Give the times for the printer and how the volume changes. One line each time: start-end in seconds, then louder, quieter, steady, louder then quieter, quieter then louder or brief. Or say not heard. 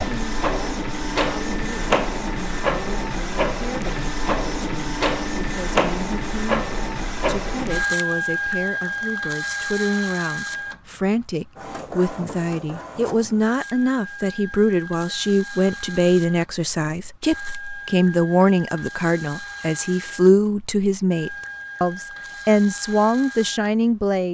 0.0-24.2 quieter.